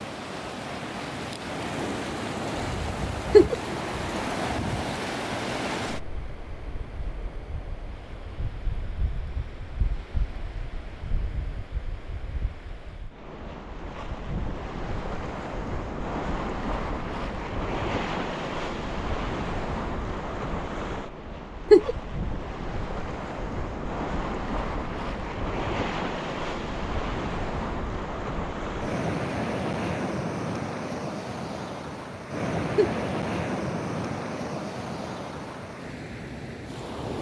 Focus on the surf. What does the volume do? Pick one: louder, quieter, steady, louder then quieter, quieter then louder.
quieter then louder.